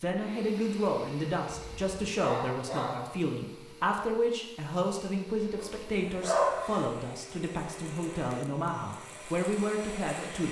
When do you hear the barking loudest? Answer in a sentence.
The volume of the barking peaks at 6 seconds.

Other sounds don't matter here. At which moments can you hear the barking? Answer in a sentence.
The barking can be heard from 1.5 to 3.1 s and from 5.6 to 6.8 s.